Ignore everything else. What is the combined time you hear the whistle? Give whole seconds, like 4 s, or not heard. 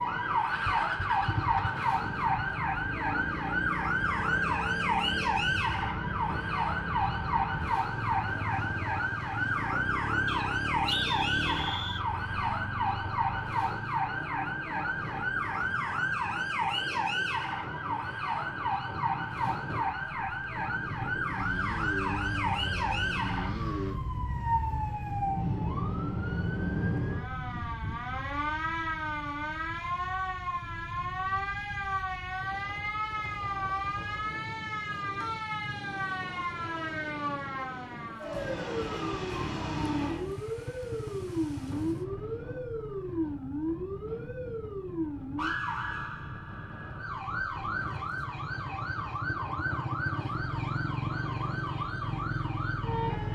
2 s.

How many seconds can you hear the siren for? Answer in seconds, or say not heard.
53 s.